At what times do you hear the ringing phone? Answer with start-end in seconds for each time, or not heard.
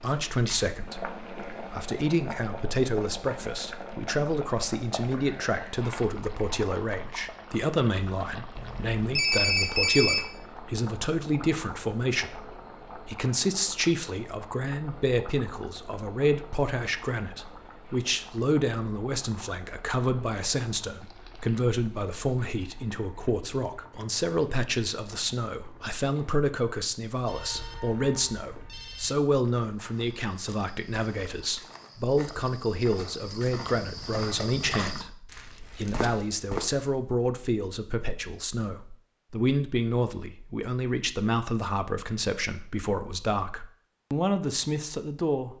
8.6-10.2, 27.2-29.1.